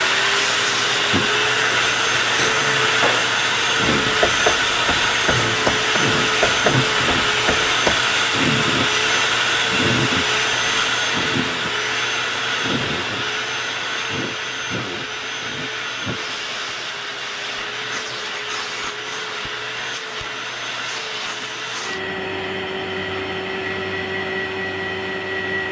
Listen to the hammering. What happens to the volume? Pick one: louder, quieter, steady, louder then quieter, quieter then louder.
quieter then louder.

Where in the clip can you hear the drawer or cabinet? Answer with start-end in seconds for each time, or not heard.
18.4-18.9.